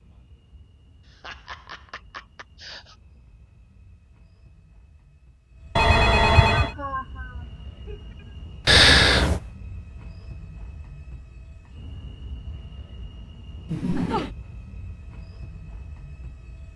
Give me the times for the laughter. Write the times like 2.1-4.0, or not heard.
1.1-3.0, 6.5-8.2, 13.7-14.3.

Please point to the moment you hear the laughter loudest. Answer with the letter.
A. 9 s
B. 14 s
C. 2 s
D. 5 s
B.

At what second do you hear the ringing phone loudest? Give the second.
9 s.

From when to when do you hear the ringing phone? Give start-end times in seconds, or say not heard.
5.8-6.8, 8.7-9.4.